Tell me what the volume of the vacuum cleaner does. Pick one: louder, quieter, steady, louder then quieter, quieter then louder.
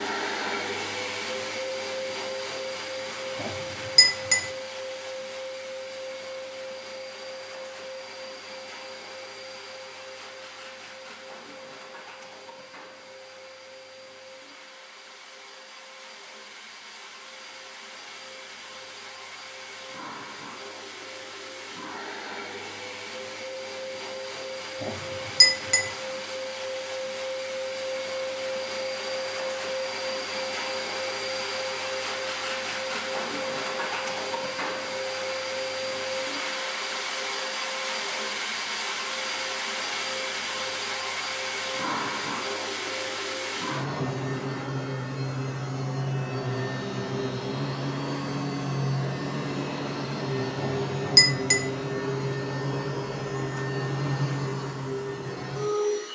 quieter then louder.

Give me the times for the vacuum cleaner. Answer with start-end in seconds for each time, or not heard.
0.0-56.0.